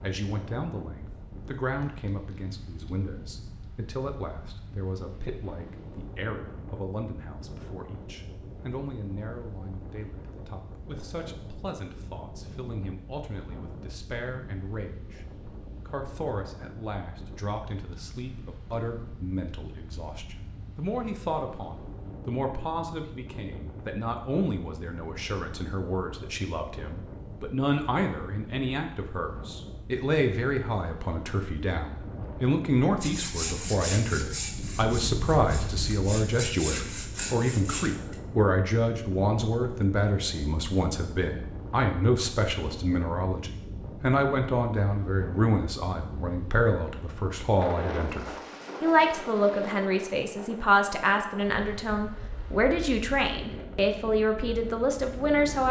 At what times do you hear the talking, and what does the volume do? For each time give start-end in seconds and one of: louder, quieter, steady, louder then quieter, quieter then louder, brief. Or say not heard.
0.0-55.6 louder.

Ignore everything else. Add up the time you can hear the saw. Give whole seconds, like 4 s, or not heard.
5 s.